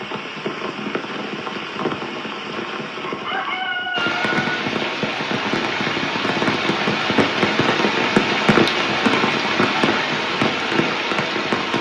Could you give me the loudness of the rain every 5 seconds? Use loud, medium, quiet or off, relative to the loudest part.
medium, loud, loud.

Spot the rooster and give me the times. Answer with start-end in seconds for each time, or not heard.
3.0-4.5.